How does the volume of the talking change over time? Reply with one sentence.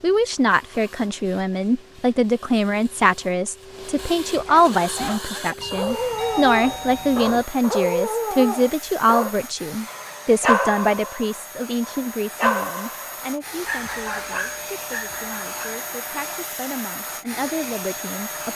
The loudness of the talking goes down.